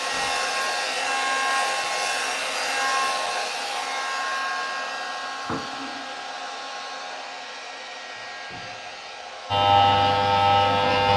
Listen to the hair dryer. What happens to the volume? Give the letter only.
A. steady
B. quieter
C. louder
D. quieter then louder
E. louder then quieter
B.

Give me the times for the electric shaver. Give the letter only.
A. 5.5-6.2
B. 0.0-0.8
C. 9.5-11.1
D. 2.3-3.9
C.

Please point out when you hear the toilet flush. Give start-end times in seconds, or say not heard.
5.5-6.2.